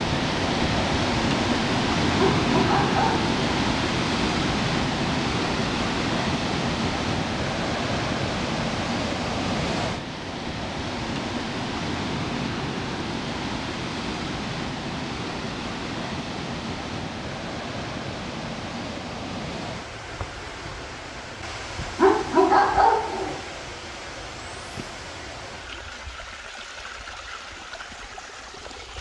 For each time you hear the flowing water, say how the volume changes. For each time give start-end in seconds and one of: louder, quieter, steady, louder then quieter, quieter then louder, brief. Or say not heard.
0.0-28.9 quieter.